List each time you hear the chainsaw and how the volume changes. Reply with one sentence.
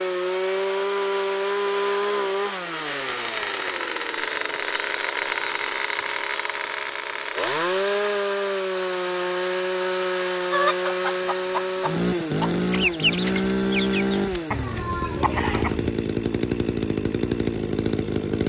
The chainsaw can be heard from 0.0 to 18.4 s, at a steady volume.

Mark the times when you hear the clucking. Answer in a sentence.
You can hear the clucking from 10.5 to 15.9 s.